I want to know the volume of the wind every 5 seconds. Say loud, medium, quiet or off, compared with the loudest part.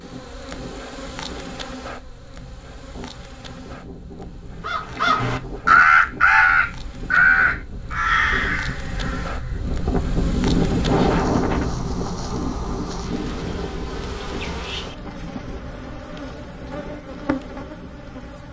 quiet, medium, loud, quiet.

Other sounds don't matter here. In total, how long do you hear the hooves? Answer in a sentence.
You can't hear the hooves here.